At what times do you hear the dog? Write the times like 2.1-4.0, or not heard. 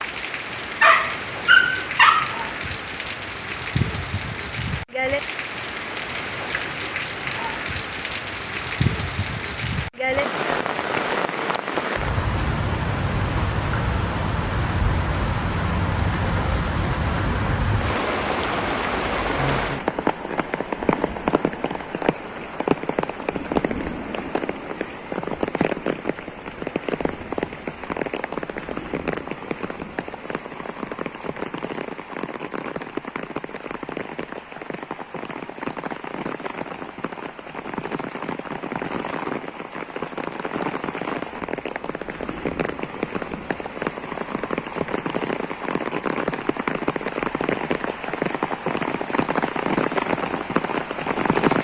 0.8-2.5.